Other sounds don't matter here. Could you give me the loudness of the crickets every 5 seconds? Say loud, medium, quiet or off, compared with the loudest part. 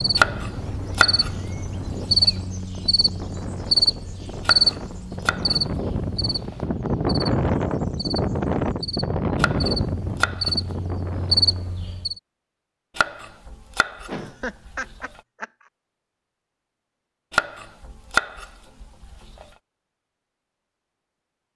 loud, medium, loud, off, off.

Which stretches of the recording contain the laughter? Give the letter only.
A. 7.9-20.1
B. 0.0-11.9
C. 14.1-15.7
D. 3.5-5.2
C.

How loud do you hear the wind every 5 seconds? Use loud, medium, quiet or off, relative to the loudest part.
medium, loud, medium, off, off.